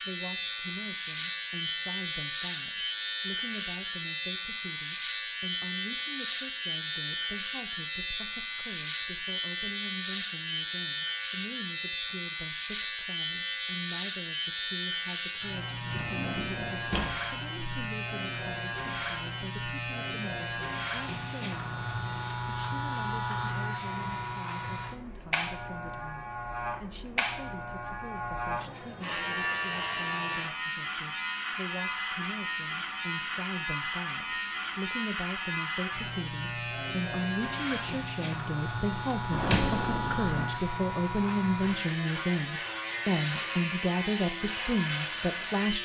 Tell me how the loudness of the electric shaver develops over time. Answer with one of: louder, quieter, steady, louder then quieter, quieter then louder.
steady.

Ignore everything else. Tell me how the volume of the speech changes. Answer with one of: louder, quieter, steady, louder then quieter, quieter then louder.
louder.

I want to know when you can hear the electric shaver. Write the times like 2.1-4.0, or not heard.
0.0-45.8.